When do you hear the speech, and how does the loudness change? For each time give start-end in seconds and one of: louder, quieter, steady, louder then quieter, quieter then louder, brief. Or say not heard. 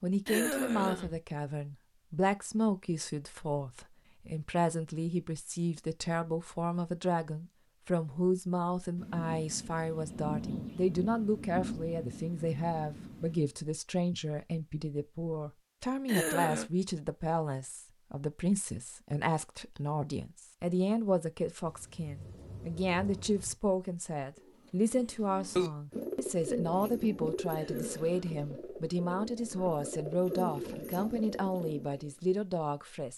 0.0-33.1 steady.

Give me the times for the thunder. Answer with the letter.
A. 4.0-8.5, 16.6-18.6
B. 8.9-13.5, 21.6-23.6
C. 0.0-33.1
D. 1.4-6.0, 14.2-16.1
B.